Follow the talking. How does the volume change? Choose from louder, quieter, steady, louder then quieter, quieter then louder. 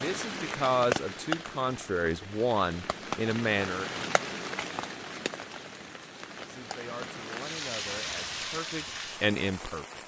quieter then louder.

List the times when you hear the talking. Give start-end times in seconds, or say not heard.
0.0-4.0, 6.5-10.0.